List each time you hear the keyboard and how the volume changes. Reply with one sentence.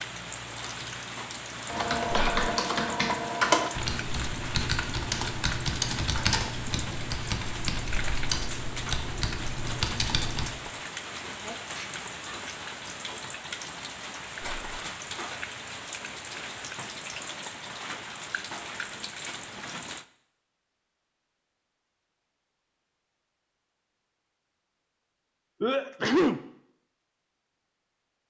You can hear the keyboard from 1.6 to 10.6 s, getting quieter.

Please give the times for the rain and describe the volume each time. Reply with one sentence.
You can hear the rain from 0.0 to 20.1 s, at a steady volume.